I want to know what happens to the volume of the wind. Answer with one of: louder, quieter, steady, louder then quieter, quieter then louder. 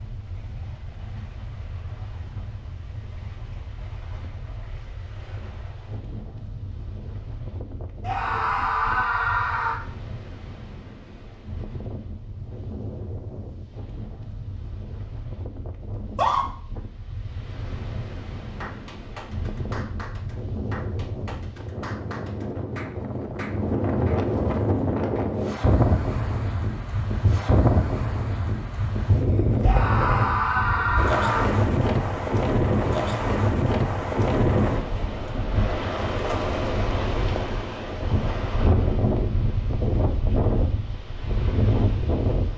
louder.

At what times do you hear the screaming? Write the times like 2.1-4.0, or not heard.
8.0-9.8, 15.9-16.4, 29.6-31.5.